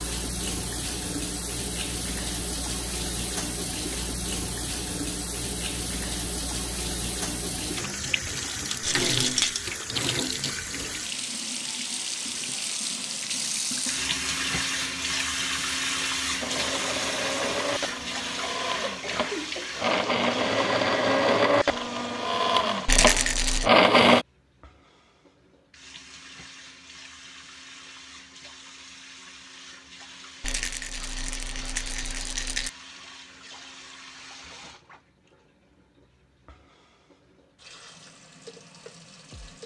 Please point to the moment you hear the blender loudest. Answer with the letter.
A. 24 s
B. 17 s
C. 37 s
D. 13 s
A.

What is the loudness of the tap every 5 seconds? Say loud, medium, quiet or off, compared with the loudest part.
loud, loud, loud, loud, medium, quiet, quiet, quiet.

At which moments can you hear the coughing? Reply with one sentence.
The coughing can be heard from 18.6 to 19.9 s.